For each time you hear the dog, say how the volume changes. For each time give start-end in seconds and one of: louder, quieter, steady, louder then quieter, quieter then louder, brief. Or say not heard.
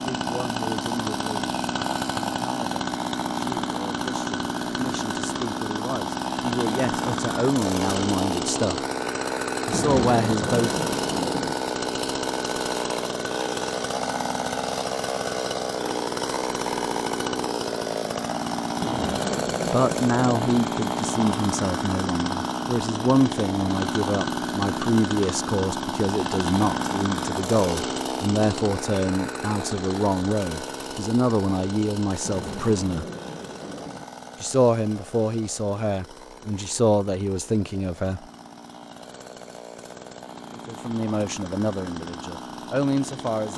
not heard.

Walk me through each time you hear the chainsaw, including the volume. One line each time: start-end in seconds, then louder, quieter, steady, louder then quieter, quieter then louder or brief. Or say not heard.
0.0-43.5 quieter.